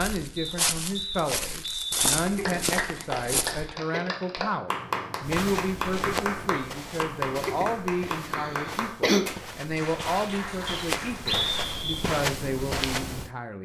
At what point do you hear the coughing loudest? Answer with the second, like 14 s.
9 s.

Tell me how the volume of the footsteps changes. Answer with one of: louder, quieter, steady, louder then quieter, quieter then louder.
quieter then louder.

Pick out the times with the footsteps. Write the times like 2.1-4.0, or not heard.
0.0-3.7, 5.2-13.3.